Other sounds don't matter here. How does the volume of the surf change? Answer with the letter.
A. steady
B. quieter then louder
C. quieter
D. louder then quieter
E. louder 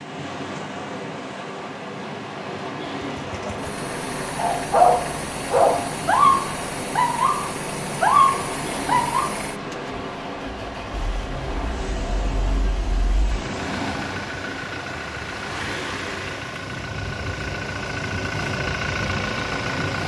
A.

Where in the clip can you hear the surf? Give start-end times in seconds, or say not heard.
0.0-20.0.